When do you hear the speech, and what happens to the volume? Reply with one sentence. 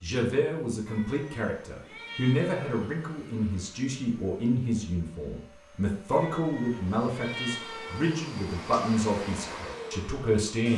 The speech can be heard from 0.0 to 10.7 s, at a steady volume.